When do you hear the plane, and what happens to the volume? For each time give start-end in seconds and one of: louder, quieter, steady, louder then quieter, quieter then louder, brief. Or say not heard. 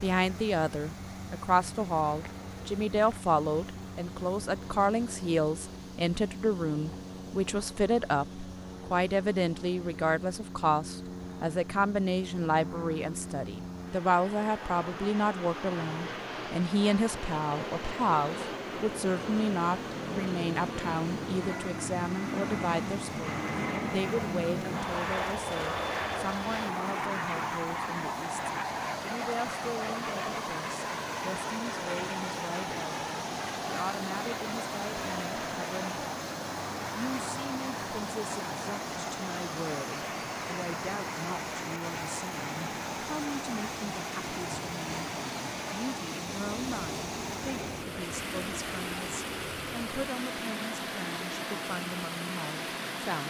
0.1-53.1 louder then quieter.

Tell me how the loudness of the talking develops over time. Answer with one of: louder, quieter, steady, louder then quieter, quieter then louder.
quieter.